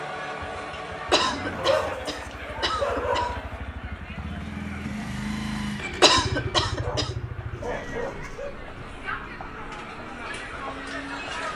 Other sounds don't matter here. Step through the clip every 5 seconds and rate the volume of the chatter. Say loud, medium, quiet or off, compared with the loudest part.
loud, medium, loud.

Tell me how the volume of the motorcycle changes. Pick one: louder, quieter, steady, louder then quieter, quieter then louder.
louder then quieter.